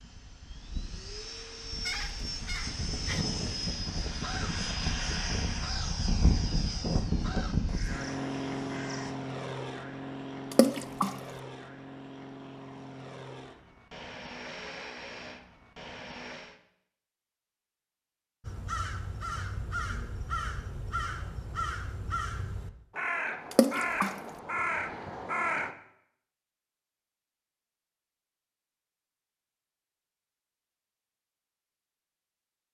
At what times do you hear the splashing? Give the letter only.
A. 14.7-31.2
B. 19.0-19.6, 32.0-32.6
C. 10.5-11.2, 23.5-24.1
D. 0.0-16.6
C.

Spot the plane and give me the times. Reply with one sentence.
You can hear the plane from 0.0 to 16.6 s.